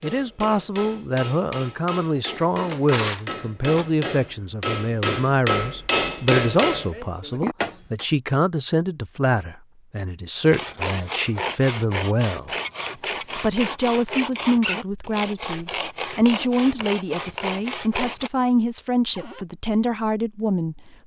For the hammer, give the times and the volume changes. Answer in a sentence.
You can hear the hammer from 0.0 to 8.1 s, getting louder.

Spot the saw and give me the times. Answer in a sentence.
You can hear the saw from 10.4 to 18.3 s.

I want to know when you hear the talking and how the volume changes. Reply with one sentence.
The talking can be heard from 0.0 to 12.6 s, at a steady volume; and from 13.3 to 20.9 s, at a steady volume.